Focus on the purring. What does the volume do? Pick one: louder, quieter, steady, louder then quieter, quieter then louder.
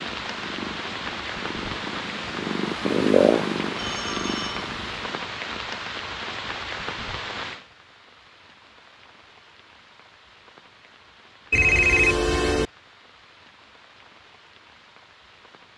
louder then quieter.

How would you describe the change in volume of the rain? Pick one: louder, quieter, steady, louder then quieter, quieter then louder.
quieter.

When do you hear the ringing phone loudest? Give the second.
12 s.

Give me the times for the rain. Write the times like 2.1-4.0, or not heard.
0.0-15.7.